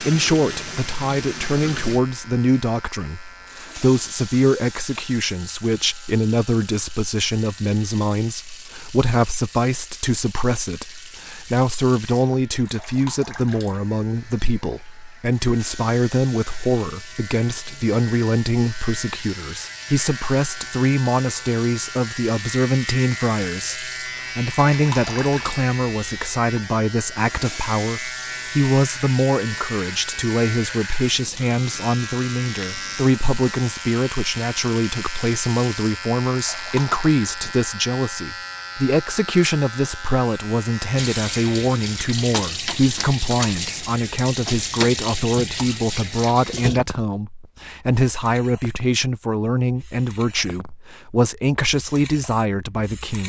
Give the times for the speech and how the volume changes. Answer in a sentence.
The speech can be heard from 0.0 to 53.2 s, at a steady volume.